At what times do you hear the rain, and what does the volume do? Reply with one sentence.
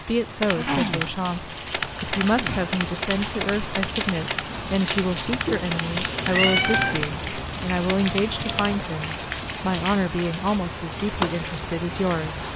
You can hear the rain from 0.0 to 12.5 s, at a steady volume.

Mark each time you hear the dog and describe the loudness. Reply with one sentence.
You can't hear the dog here.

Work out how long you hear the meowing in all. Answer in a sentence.
You can hear the meowing for 2 seconds altogether.